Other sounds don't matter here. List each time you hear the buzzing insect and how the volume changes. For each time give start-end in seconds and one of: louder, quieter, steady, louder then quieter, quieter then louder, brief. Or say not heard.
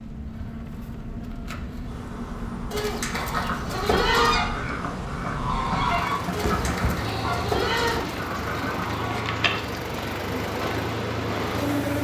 0.0-11.9 louder.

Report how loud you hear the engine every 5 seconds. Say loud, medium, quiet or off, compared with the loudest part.
medium, loud, loud.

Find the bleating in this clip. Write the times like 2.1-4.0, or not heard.
2.7-4.4, 6.3-9.2.